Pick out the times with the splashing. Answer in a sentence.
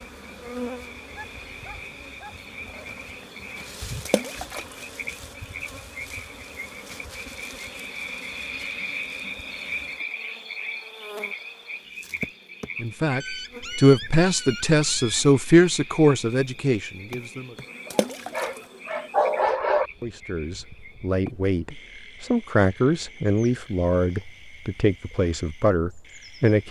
You can hear the splashing from 4.0 to 4.8 s and from 17.9 to 18.6 s.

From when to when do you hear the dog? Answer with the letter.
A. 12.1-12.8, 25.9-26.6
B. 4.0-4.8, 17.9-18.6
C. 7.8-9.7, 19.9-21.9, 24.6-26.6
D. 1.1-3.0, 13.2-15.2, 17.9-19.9
D.